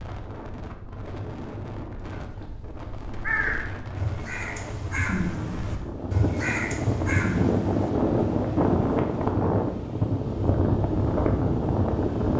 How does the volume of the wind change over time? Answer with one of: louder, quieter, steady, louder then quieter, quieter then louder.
louder.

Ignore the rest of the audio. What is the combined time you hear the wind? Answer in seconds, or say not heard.
12 s.